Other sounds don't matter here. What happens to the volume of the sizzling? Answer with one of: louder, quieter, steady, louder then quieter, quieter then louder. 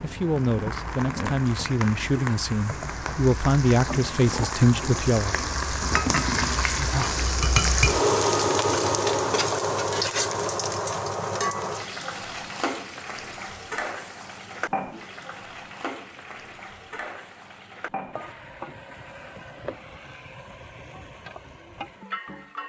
louder then quieter.